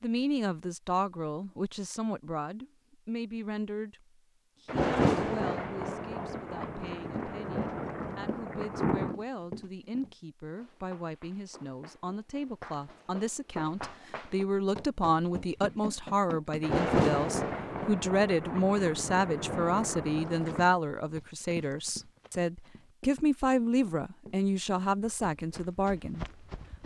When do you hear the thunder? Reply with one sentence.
You can hear the thunder from 4.7 to 9.2 s and from 16.6 to 20.7 s.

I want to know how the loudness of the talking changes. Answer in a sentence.
The volume of the talking goes down, then up.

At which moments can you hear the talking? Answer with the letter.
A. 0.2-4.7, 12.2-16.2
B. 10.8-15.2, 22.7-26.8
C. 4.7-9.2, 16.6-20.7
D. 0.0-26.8
D.